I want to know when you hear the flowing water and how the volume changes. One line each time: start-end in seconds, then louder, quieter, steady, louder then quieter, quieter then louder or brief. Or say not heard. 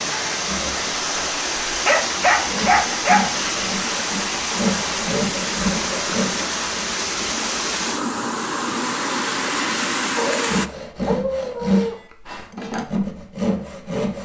0.0-10.7 steady.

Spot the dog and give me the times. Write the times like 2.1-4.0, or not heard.
1.9-3.3, 10.2-12.0.